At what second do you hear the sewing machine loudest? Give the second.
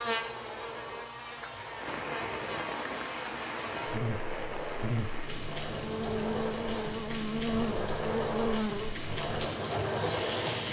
10 s.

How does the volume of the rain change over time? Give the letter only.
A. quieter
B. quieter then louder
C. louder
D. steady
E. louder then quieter
D.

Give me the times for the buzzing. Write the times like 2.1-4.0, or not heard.
0.0-10.6.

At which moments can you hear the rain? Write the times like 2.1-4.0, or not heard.
1.8-10.6.